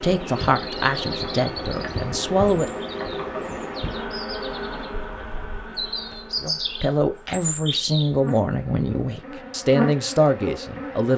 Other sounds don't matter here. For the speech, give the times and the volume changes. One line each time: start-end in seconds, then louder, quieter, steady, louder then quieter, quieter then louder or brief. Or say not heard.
0.0-2.7 brief
6.4-11.1 steady.